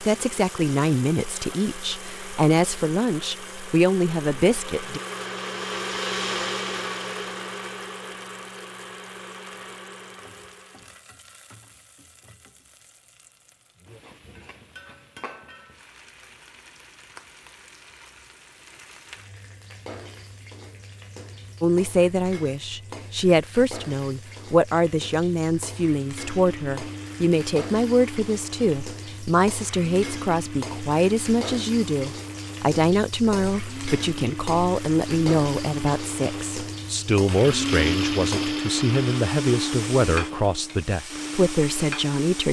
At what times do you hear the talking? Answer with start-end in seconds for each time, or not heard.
0.0-5.0, 21.6-42.4.